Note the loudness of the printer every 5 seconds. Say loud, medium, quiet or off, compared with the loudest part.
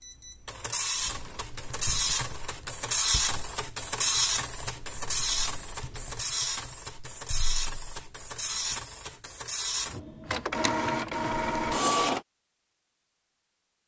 loud, medium, loud.